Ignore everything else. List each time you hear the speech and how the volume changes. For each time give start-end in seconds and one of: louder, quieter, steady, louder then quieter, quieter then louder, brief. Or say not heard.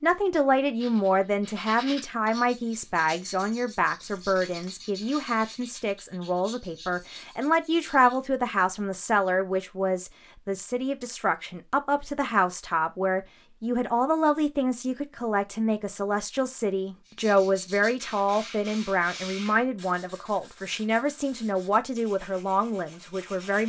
0.0-23.6 steady.